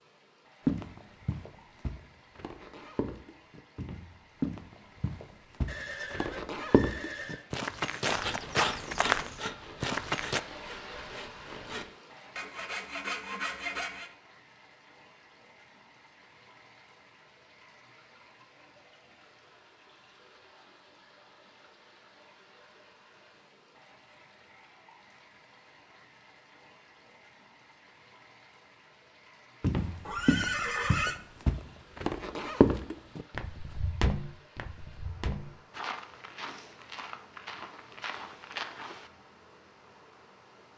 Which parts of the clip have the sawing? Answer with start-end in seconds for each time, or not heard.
8.1-14.1.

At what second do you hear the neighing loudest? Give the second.
31 s.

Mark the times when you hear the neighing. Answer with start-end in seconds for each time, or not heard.
5.7-7.5, 30.1-31.2.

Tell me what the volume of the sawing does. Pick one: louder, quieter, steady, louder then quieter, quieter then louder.
quieter then louder.